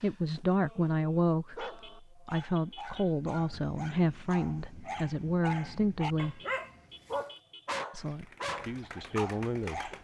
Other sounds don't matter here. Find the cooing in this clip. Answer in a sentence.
You can hear the cooing from 8.0 to 9.9 s.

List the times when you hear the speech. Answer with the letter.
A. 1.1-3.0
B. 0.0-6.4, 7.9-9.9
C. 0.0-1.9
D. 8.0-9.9
B.